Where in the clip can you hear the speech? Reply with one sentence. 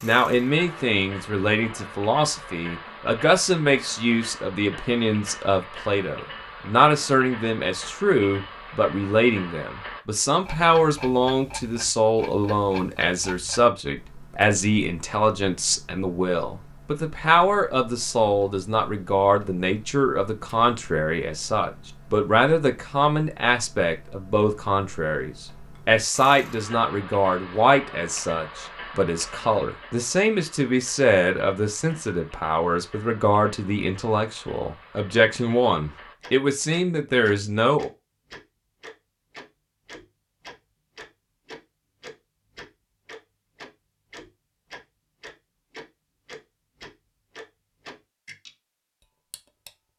The speech can be heard from 0.0 to 37.9 s.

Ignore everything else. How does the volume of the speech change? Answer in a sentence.
The loudness of the speech stays about the same.